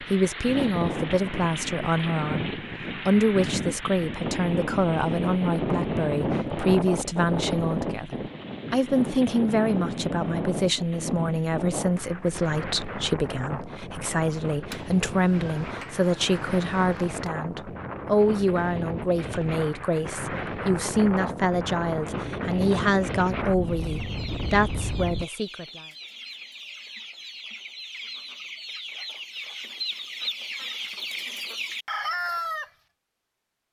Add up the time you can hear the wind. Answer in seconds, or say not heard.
25 s.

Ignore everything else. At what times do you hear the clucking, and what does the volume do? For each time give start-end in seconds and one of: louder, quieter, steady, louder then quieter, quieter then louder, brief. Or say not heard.
23.6-32.7 louder.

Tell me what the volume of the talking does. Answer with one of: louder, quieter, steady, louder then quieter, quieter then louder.
steady.